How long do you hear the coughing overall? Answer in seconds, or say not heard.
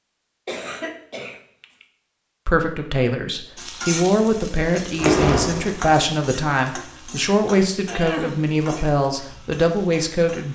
2 s.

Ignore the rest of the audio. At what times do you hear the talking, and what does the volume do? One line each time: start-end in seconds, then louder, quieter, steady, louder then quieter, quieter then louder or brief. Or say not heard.
2.5-10.5 steady.